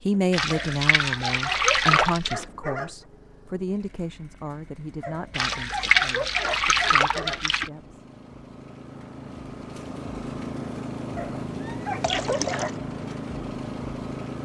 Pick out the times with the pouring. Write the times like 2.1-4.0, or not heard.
0.3-2.5, 5.3-7.7, 12.0-12.7.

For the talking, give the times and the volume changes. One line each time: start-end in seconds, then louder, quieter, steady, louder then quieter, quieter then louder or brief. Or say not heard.
0.0-8.0 quieter.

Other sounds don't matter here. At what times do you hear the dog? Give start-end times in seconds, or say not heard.
0.5-3.0, 5.0-7.4, 11.2-12.8.